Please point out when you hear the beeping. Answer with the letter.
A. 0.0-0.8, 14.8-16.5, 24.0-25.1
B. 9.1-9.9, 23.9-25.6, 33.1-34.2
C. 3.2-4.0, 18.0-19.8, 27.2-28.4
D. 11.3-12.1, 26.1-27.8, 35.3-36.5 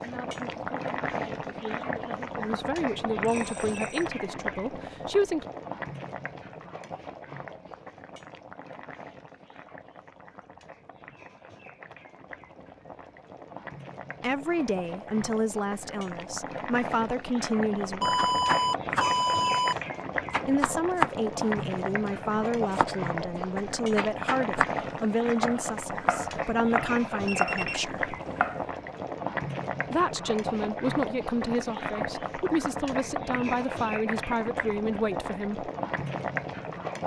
C.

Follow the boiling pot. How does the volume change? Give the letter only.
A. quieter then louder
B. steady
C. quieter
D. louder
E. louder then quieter
A.